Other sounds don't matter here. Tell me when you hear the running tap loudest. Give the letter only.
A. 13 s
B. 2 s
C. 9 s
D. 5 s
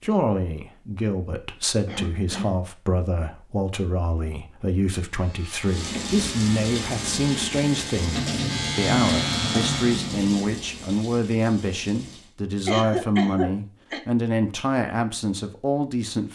C.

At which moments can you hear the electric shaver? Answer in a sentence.
The electric shaver can be heard from 5.0 to 10.2 s.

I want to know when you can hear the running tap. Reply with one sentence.
You can hear the running tap from 5.7 to 12.3 s.